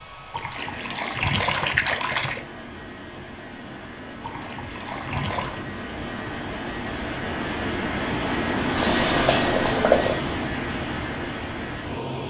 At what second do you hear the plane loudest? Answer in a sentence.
The loudest moment of the plane is at 9 seconds.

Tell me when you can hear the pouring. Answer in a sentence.
The pouring can be heard from 0.3 to 2.5 s, from 4.2 to 5.7 s and from 8.8 to 10.2 s.